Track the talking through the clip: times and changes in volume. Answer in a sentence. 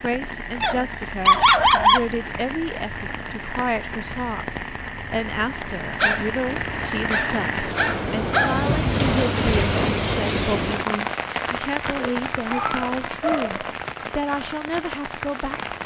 You can hear the talking from 0.0 to 15.8 s, at a steady volume.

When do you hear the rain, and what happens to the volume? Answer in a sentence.
You can hear the rain from 0.0 to 15.8 s, getting louder then quieter.